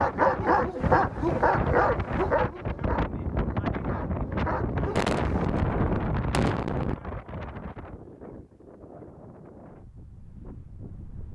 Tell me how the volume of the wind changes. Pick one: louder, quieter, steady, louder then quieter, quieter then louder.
quieter.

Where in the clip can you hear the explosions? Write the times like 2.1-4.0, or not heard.
5.0-7.0.